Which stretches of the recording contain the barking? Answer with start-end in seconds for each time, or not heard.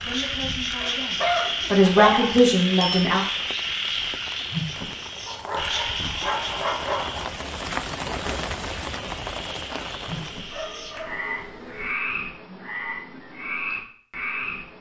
0.8-2.5, 5.2-7.3, 10.1-11.9.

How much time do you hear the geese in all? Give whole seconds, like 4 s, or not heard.
not heard.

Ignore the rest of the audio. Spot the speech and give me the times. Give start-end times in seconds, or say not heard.
0.0-3.2.